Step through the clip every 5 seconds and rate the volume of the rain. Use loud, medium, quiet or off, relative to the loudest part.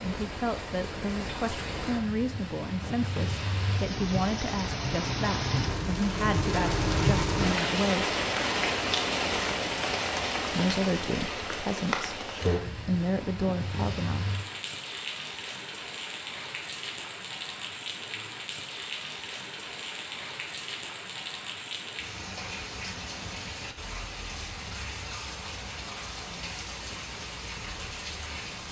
medium, loud, medium, medium, medium, medium.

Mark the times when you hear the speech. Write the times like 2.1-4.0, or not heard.
0.0-8.2, 10.5-14.2.